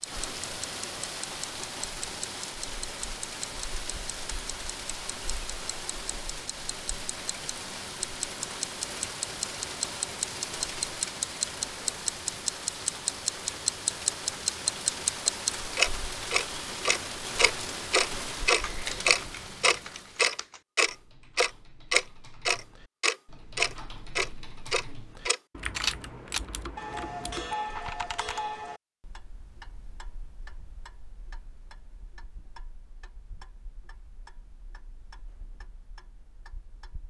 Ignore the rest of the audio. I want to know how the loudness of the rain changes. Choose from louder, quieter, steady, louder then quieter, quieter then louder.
steady.